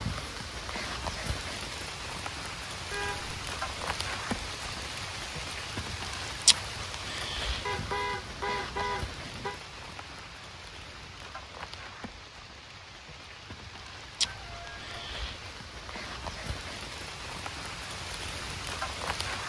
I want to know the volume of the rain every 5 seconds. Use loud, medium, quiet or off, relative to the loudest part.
loud, loud, medium, loud.